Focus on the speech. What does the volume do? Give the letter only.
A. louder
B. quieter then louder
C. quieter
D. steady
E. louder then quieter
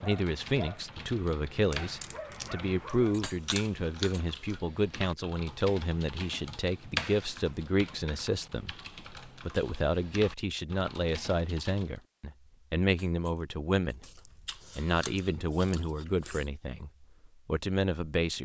D.